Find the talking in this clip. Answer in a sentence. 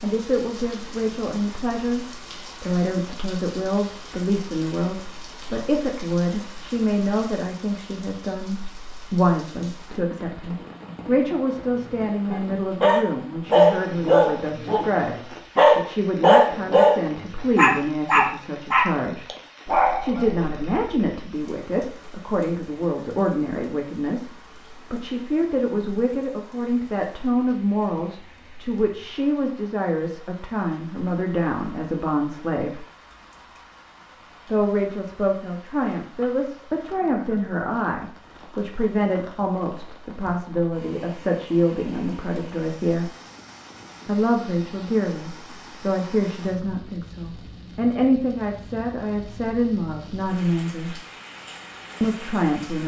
The talking can be heard from 0.0 to 15.2 s, from 15.8 to 19.2 s, from 20.0 to 32.9 s, from 34.5 to 43.1 s, from 44.0 to 51.0 s and from 52.0 to 52.8 s.